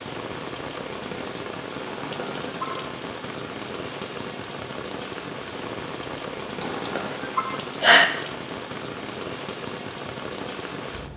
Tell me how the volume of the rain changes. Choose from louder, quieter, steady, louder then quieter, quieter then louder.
steady.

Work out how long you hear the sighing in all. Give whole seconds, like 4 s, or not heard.
3 s.